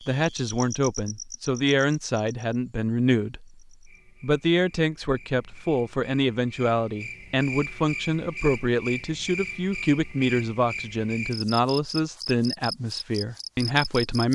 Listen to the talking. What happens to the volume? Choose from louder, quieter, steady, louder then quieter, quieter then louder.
steady.